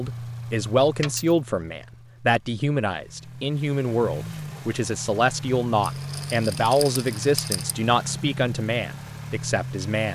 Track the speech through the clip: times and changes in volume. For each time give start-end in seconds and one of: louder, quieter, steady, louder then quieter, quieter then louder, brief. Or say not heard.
0.0-10.0 steady.